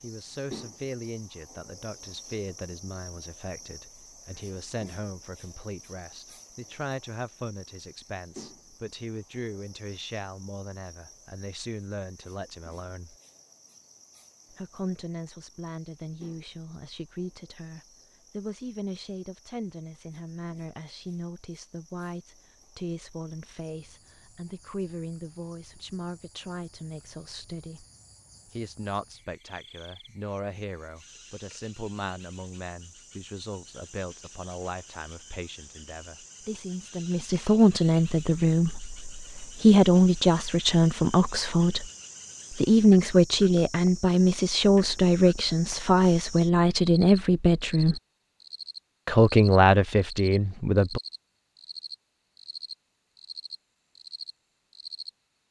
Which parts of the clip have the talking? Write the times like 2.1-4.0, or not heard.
0.0-13.2, 14.5-27.9, 28.4-41.9, 42.5-48.0, 49.0-51.0.